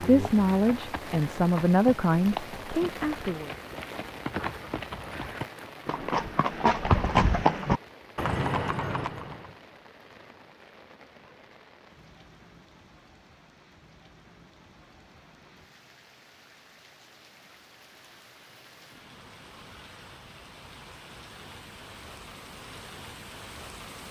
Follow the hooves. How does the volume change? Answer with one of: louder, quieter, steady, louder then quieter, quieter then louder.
louder.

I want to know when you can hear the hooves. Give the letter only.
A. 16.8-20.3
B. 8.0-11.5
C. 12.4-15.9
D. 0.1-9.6
D.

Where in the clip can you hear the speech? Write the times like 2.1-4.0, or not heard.
0.0-3.5.